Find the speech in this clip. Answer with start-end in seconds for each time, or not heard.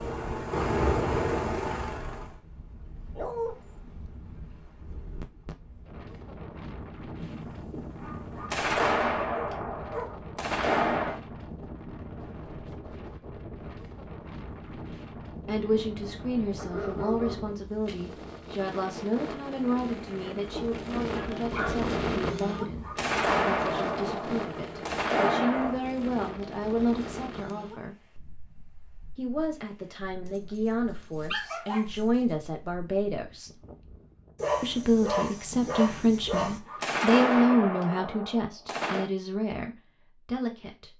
15.4-27.9, 29.1-33.5, 34.6-40.9.